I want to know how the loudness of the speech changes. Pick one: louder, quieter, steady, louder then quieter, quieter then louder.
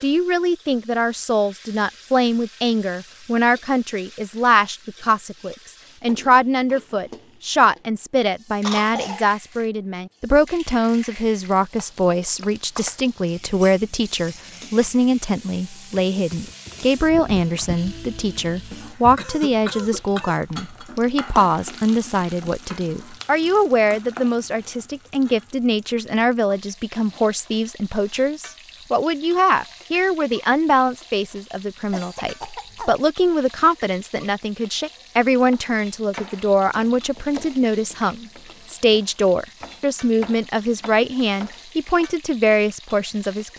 steady.